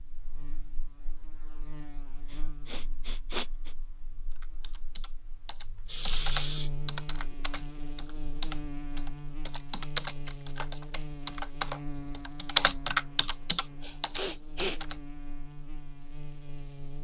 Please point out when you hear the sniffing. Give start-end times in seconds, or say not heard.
2.3-3.7, 5.8-6.7, 13.8-14.8.